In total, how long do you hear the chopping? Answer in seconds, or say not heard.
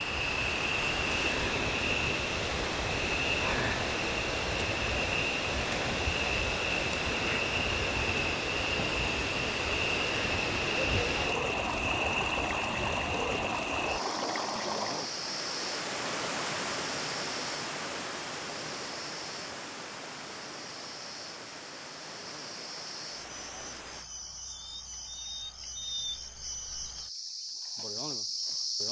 not heard.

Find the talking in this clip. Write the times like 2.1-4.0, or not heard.
not heard.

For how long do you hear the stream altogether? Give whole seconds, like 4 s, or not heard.
24 s.